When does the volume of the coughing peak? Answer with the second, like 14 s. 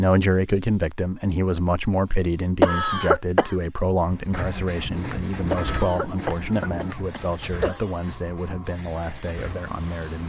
3 s.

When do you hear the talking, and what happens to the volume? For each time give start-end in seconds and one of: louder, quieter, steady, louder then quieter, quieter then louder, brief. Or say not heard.
0.0-10.2 quieter.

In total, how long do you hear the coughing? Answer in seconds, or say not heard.
3 s.